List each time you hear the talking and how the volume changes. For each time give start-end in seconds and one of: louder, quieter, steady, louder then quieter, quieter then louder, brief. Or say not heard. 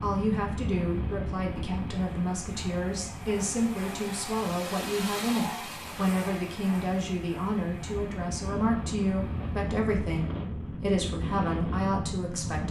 0.0-12.6 steady.